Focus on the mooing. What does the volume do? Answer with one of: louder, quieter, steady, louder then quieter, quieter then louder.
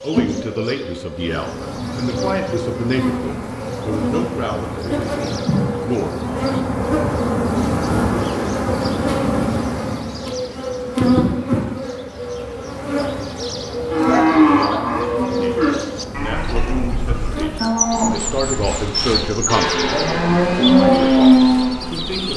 quieter then louder.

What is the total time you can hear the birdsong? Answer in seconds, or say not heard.
22 s.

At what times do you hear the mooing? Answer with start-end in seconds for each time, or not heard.
13.8-21.8.